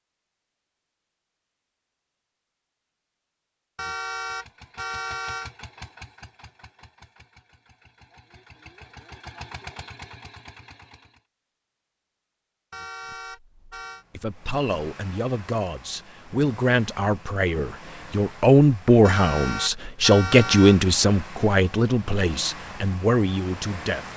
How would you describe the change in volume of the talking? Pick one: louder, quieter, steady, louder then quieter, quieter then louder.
louder then quieter.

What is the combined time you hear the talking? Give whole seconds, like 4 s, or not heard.
10 s.